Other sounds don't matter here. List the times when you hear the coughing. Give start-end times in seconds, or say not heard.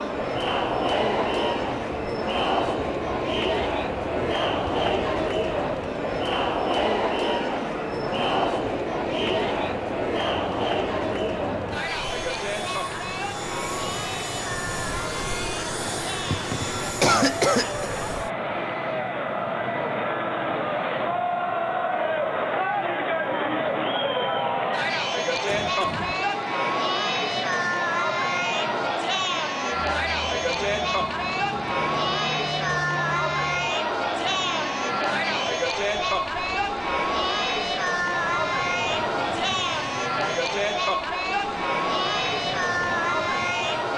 16.3-17.9, 25.4-26.2.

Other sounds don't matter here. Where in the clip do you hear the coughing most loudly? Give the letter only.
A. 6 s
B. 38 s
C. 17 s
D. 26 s
C.